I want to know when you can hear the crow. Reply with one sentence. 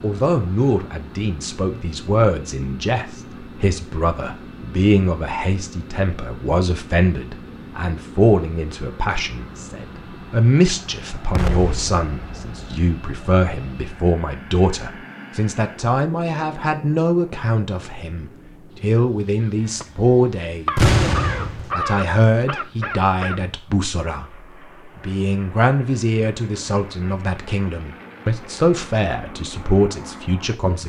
The crow can be heard from 18.9 to 23.4 s.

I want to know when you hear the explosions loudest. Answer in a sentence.
The loudest moment of the explosions is at 21 seconds.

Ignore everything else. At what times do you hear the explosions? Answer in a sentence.
The explosions can be heard from 11.3 to 12.6 s and from 20.8 to 21.8 s.